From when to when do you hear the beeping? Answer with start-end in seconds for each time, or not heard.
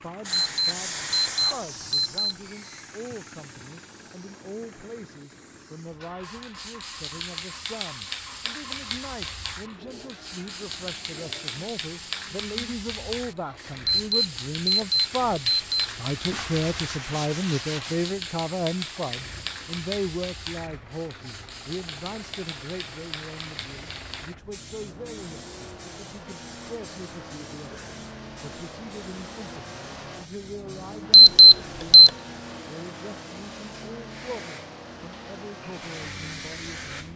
0.3-2.4, 13.8-15.9, 31.1-32.1.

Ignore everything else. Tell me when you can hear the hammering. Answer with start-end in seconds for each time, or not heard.
not heard.